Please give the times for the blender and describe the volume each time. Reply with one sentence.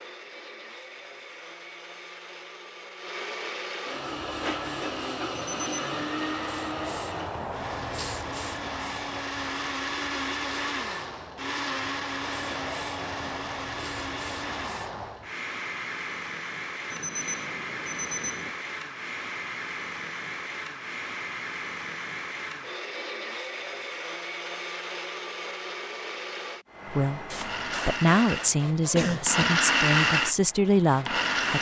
You can hear the blender from 0.0 to 31.5 s, getting louder.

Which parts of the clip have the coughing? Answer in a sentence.
The coughing can be heard from 28.9 to 29.6 s.